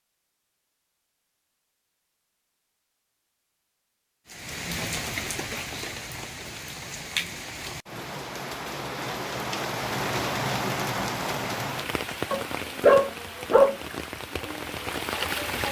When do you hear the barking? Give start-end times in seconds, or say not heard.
12.3-13.8.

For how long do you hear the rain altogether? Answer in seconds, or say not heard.
11 s.